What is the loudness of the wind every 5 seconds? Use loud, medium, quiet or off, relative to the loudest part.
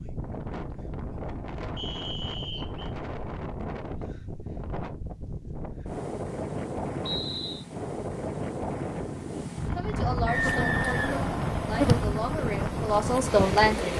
medium, loud, loud.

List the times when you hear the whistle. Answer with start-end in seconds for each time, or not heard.
1.8-2.9, 7.0-7.7, 10.2-11.8.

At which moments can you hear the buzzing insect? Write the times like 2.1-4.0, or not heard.
10.3-13.9.